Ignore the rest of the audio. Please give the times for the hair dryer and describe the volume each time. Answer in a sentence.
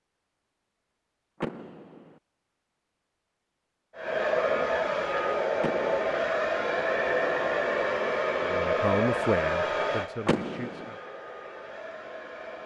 The hair dryer can be heard from 4.0 to 12.6 s, getting quieter.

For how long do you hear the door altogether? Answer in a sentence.
The door can be heard for 2 seconds in total.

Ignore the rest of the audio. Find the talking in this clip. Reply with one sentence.
The talking can be heard from 8.4 to 11.0 s.